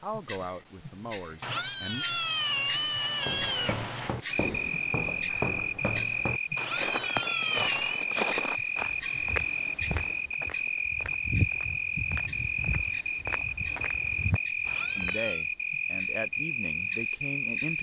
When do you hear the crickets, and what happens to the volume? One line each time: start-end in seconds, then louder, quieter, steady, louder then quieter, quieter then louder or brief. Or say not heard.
4.5-17.7 steady.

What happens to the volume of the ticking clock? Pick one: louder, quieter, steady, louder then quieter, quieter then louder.
quieter.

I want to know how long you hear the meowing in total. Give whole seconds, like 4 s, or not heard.
5 s.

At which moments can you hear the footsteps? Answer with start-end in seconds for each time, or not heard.
3.1-15.2.